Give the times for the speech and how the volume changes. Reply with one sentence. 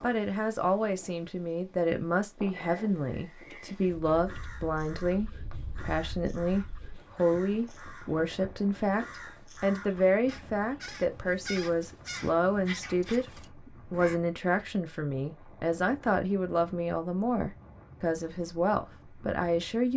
You can hear the speech from 0.0 to 19.9 s, at a steady volume.